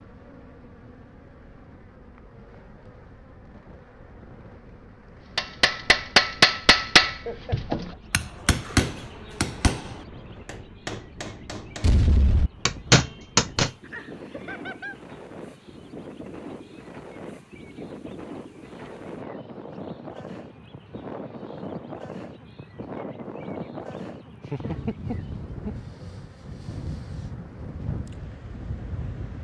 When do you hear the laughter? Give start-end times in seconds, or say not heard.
7.2-7.8, 13.8-14.9, 24.4-25.8.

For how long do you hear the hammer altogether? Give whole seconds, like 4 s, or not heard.
8 s.